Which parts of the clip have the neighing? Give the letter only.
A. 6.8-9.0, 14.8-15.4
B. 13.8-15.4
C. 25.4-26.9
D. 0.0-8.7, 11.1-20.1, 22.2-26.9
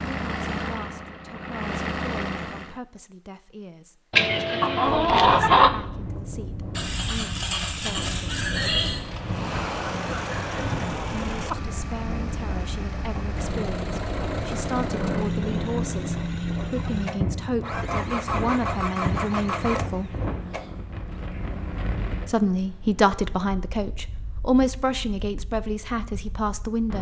A.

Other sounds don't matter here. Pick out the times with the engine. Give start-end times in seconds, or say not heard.
0.0-2.8, 9.0-21.2.